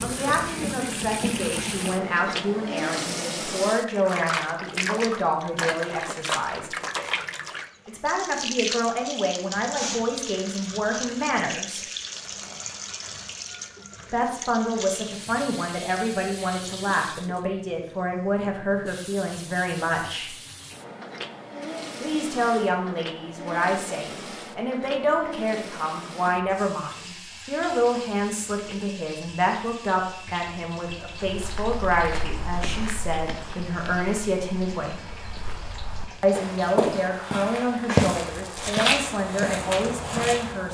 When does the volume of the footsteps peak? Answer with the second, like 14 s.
38 s.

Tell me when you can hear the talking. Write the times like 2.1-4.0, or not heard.
0.0-6.7, 7.8-11.8, 14.1-20.4, 22.0-35.1, 36.2-40.6.